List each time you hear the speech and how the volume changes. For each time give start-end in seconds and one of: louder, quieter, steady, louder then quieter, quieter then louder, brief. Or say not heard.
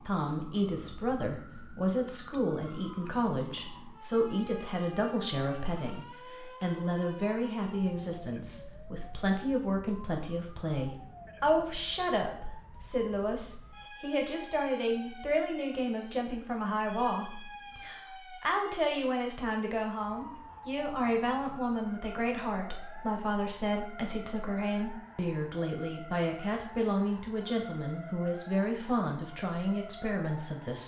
0.1-30.8 steady.